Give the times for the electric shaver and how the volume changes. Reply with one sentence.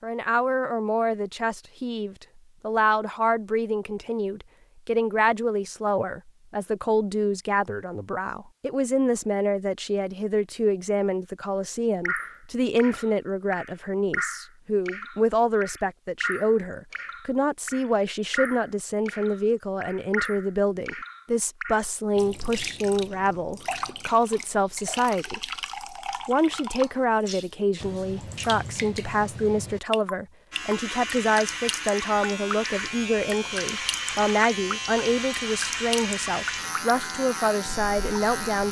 The electric shaver can be heard from 30.5 to 38.6 s, at a steady volume.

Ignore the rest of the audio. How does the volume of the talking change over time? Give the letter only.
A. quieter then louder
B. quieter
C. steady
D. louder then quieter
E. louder
C.